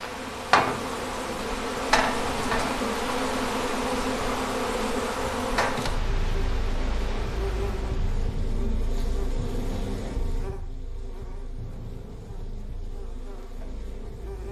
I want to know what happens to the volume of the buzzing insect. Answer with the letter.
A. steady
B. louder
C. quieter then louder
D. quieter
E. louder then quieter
D.